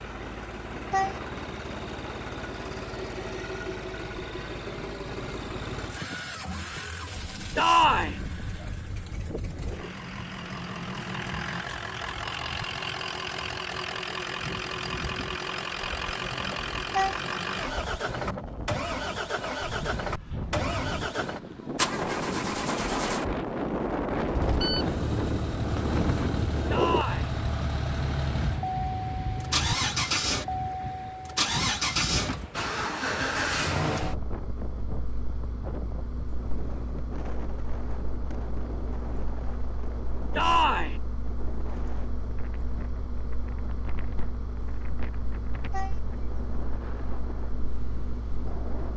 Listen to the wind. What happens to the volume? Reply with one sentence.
The loudness of the wind goes up, then down.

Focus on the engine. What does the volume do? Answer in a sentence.
The volume of the engine goes up, then down.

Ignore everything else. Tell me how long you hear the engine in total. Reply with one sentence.
You can hear the engine for 49 seconds altogether.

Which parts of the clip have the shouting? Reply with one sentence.
The shouting can be heard from 7.5 to 8.2 s, from 26.7 to 27.3 s and from 40.4 to 41.0 s.